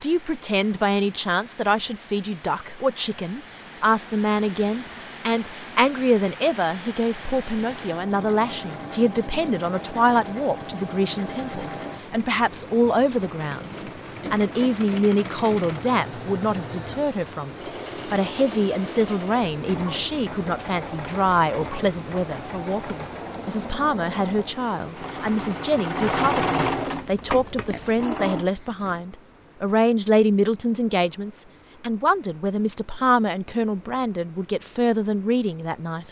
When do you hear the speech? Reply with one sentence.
The speech can be heard from 0.0 to 36.0 s.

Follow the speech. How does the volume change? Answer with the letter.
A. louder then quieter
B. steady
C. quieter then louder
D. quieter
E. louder
B.